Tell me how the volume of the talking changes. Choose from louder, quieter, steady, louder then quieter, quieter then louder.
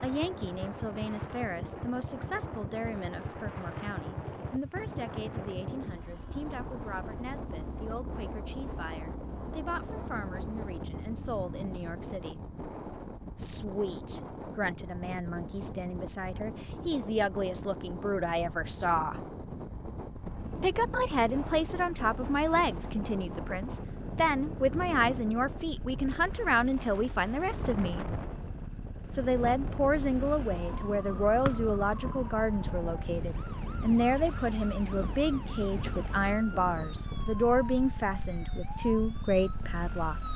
louder.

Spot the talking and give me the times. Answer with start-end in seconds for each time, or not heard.
0.0-12.4, 13.3-19.2, 20.6-28.1, 29.1-40.3.